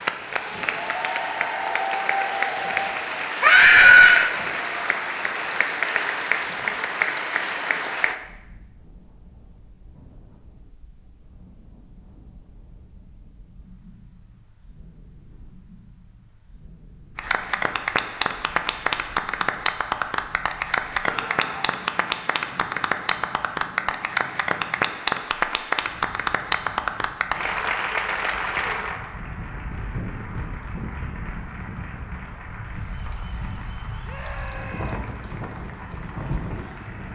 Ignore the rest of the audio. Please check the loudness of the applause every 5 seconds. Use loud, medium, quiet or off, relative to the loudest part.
loud, loud, off, loud, loud, loud, quiet, quiet.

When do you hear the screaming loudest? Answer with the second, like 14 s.
4 s.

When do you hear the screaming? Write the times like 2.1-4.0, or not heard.
3.4-4.3, 21.1-21.8, 34.0-35.0.